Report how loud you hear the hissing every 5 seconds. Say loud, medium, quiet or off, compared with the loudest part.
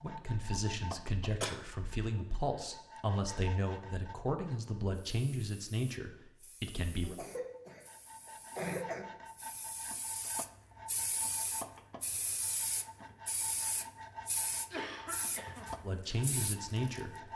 off, quiet, loud, loud.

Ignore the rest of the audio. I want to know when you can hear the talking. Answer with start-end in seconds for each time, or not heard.
0.0-7.2, 15.8-17.1.